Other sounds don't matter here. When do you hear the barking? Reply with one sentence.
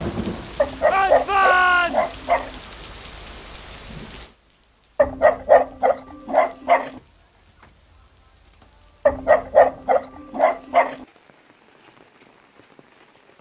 The barking can be heard from 0.6 to 2.5 s, from 5.0 to 6.9 s and from 9.1 to 10.9 s.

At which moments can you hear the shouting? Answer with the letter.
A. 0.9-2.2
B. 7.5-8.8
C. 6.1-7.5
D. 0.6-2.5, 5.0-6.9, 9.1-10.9
A.